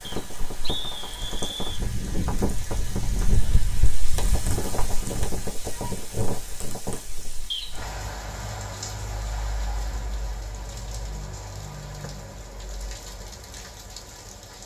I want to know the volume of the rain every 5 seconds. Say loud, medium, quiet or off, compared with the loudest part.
loud, loud, medium.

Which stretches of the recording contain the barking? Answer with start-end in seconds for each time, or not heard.
not heard.